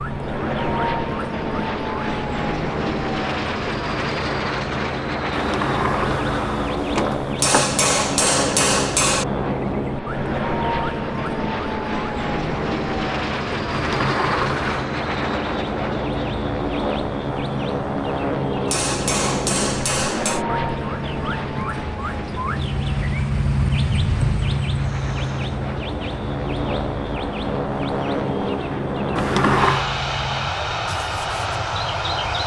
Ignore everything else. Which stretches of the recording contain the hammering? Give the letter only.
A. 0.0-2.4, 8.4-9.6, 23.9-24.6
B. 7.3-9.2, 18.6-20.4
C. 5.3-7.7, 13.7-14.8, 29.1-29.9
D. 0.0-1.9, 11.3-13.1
B.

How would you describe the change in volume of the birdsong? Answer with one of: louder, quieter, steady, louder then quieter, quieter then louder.
louder then quieter.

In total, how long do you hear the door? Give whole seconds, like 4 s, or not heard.
4 s.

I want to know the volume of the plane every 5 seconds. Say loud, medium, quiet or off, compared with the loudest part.
loud, loud, loud, loud, medium, loud, loud.